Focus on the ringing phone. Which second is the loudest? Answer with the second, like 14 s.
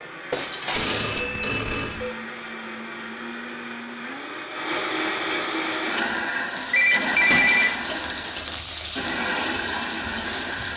7 s.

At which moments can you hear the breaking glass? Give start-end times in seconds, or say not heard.
0.3-1.2, 7.3-7.9.